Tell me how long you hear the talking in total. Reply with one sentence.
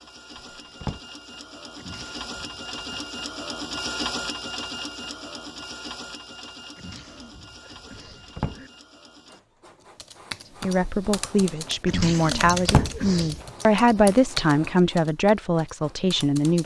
You can hear the talking for 6 seconds altogether.